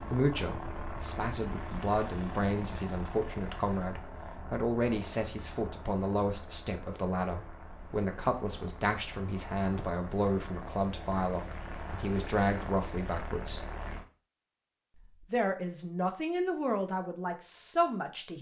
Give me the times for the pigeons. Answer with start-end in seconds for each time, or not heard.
not heard.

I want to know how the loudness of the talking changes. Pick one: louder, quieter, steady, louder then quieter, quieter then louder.
steady.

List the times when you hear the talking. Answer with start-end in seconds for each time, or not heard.
0.1-13.7, 14.9-18.3.